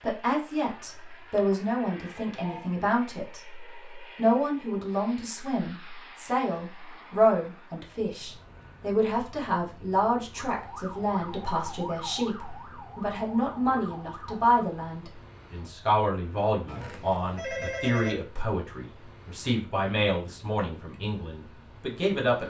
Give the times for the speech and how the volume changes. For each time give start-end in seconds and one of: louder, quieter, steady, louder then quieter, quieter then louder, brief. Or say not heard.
0.0-22.4 steady.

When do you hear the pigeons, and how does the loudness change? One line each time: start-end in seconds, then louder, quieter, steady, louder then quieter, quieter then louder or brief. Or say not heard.
not heard.